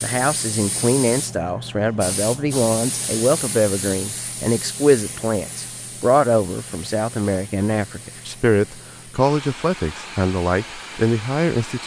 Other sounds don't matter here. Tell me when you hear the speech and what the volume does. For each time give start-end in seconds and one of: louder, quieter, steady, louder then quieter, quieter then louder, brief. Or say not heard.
0.0-11.8 steady.